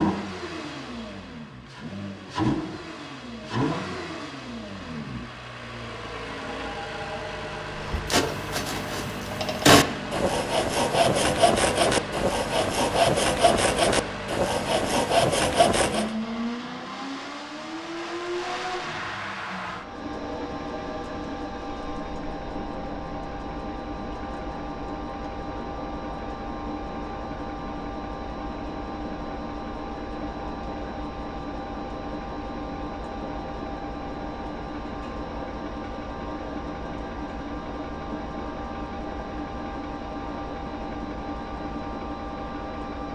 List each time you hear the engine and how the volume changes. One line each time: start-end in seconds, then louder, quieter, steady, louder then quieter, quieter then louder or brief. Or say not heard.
0.0-43.1 steady.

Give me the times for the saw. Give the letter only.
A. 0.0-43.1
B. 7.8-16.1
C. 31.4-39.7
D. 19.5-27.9
B.